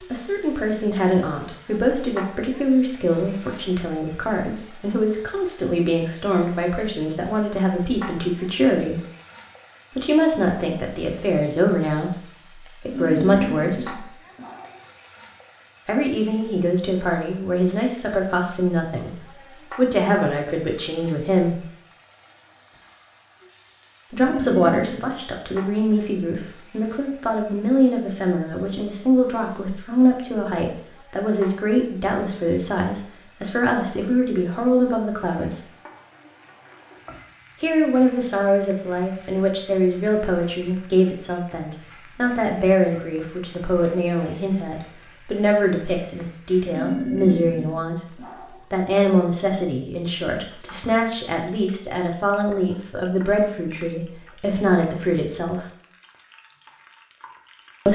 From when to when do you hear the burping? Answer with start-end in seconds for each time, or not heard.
12.9-14.8, 24.1-25.2, 46.7-48.6.